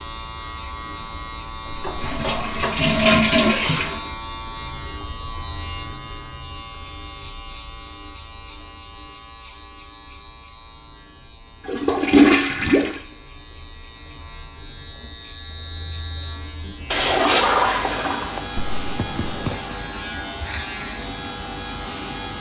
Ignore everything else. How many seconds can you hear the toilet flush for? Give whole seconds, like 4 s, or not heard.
5 s.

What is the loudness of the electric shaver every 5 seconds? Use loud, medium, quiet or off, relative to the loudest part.
loud, medium, quiet, loud, loud.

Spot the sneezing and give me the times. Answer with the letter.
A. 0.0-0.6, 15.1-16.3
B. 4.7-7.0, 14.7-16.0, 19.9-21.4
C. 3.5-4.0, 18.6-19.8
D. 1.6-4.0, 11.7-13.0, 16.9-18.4
C.